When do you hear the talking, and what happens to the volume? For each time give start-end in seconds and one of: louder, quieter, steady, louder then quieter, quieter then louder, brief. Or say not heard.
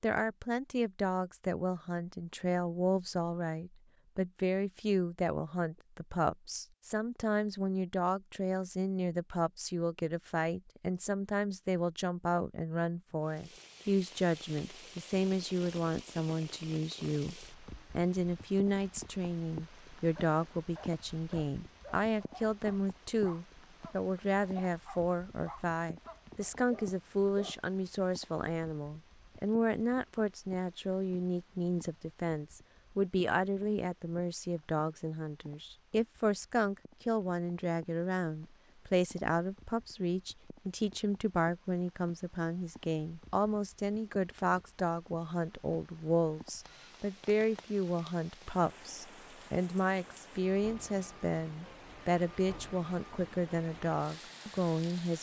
0.0-55.1 steady.